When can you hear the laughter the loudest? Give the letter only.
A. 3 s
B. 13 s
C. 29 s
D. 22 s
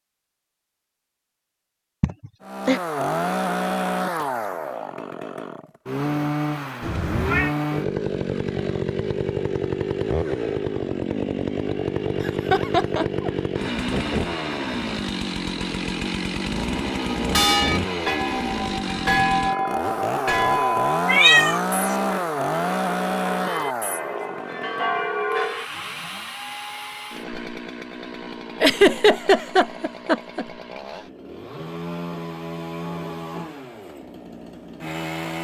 C.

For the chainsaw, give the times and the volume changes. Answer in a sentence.
You can hear the chainsaw from 2.4 to 35.3 s, getting quieter.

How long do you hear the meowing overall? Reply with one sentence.
The meowing can be heard for 2 seconds in total.